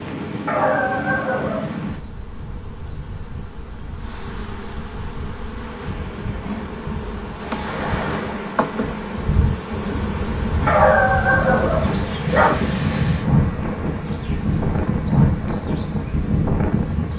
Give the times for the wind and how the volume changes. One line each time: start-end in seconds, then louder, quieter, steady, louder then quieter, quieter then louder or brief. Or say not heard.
0.0-17.1 quieter then louder.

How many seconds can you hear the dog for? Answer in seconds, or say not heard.
3 s.